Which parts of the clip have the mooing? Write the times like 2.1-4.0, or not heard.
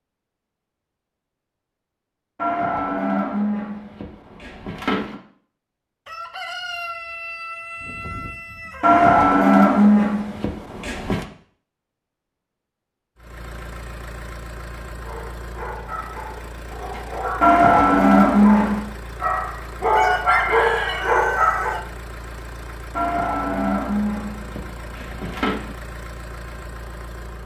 2.4-5.2, 8.8-11.2, 17.4-18.9, 22.9-25.8.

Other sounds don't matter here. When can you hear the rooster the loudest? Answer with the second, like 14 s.
20 s.